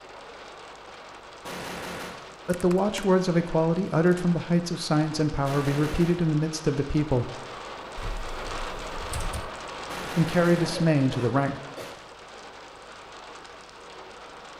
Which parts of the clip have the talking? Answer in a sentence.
You can hear the talking from 2.5 to 7.3 s and from 10.0 to 11.6 s.